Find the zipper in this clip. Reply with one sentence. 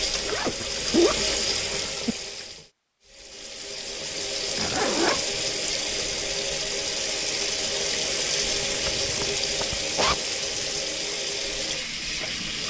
The zipper can be heard from 0.2 to 2.1 s, from 4.5 to 5.5 s and from 8.5 to 10.7 s.